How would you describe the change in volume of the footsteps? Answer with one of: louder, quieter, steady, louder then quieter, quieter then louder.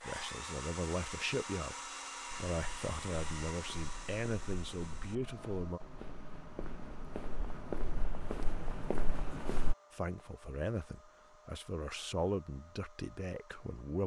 louder.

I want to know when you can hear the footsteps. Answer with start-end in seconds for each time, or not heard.
2.2-9.8.